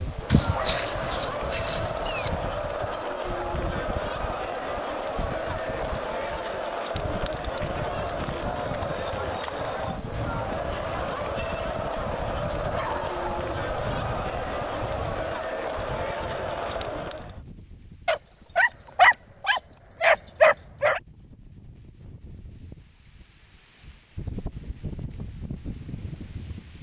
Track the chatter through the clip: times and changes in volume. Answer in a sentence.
The chatter can be heard from 0.0 to 17.4 s, at a steady volume.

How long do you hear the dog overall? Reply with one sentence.
You can hear the dog for 6 seconds altogether.